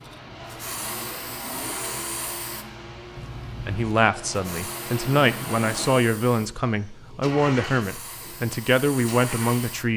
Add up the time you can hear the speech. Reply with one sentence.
You can hear the speech for 6 seconds altogether.